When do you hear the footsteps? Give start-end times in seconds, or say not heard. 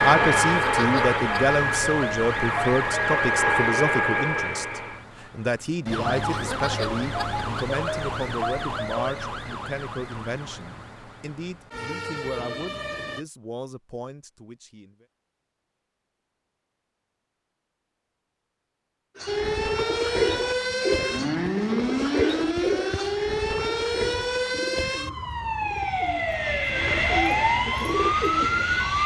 not heard.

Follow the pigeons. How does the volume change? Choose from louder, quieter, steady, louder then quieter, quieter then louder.
quieter then louder.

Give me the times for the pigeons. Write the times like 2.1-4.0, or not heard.
19.1-28.9.